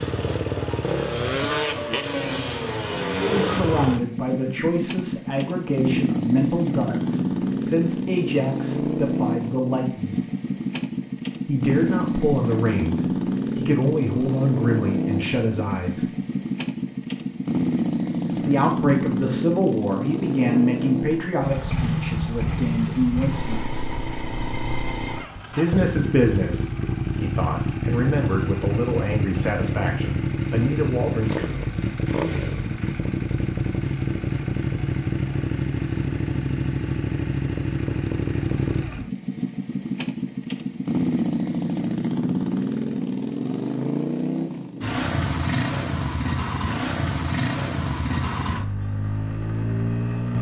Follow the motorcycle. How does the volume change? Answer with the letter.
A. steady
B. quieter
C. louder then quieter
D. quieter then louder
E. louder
A.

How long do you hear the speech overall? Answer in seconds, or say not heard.
23 s.